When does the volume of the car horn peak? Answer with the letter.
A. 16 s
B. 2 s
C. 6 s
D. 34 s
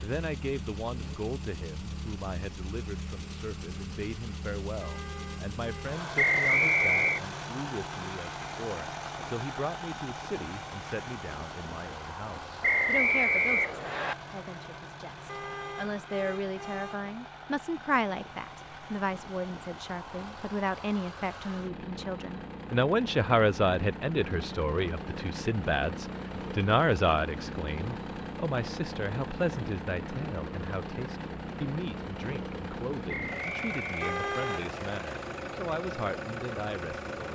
D.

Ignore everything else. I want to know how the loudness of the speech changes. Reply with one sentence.
The volume of the speech goes up, then down.